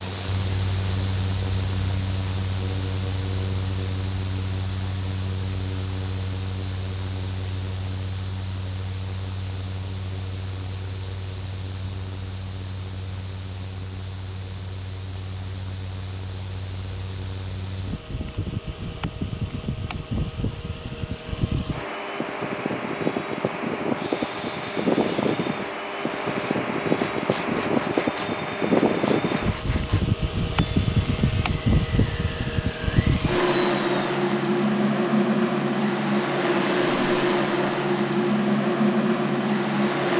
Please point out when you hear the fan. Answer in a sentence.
The fan can be heard from 0.0 to 40.1 s.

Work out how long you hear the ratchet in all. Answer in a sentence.
You can't hear the ratchet here.